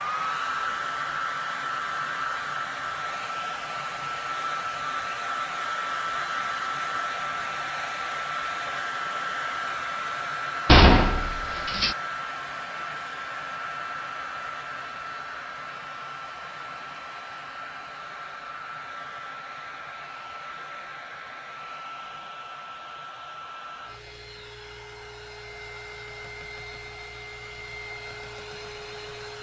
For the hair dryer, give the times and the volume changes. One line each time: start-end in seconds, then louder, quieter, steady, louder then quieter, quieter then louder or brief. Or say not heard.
0.0-29.3 quieter.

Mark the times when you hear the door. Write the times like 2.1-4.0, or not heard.
10.7-11.9.